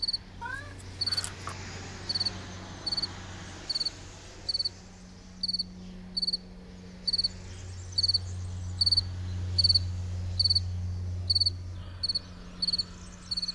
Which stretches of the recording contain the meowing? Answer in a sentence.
You can hear the meowing from 0.4 to 1.6 s.